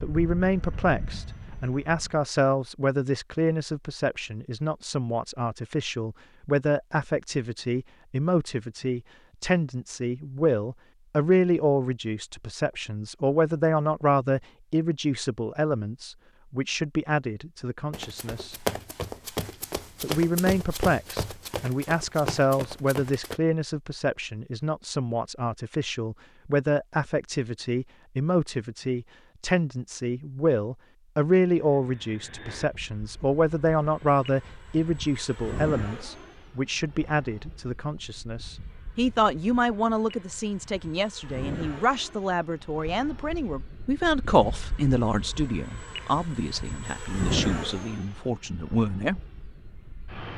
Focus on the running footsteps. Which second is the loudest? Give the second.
19 s.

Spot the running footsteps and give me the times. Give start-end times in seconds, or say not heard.
17.9-23.4.